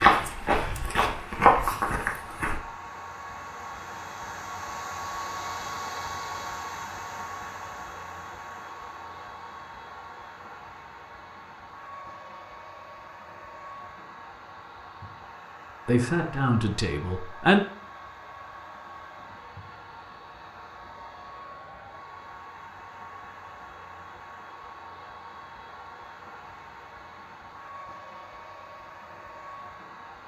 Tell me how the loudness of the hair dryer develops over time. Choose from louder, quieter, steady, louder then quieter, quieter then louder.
quieter.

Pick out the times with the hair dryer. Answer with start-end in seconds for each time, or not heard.
0.2-30.2.